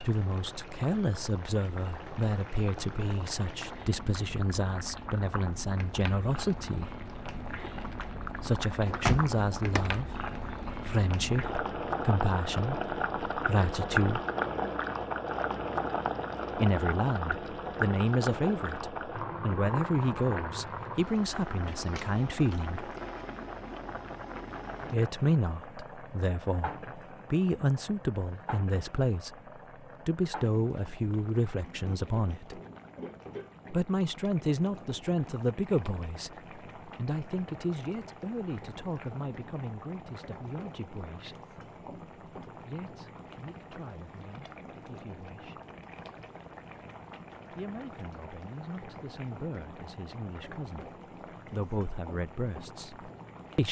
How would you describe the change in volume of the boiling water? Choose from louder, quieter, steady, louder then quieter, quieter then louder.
louder then quieter.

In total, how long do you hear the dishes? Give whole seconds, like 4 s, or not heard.
not heard.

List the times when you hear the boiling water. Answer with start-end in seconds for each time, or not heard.
0.0-53.6.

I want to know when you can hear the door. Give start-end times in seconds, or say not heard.
8.8-10.0.